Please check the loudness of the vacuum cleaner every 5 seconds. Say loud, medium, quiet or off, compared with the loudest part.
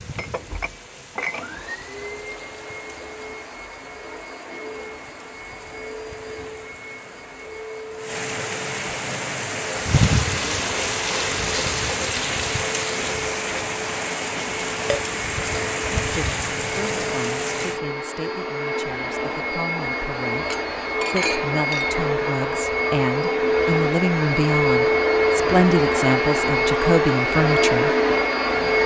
quiet, quiet, quiet, medium, loud, loud.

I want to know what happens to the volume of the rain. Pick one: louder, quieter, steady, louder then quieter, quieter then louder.
louder.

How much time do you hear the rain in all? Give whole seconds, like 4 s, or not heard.
18 s.